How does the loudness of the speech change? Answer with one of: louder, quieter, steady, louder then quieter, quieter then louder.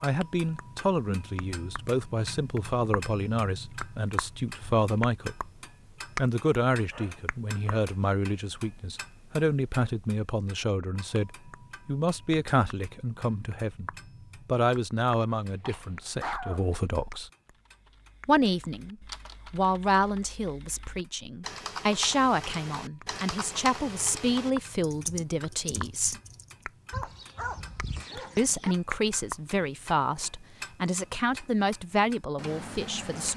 steady.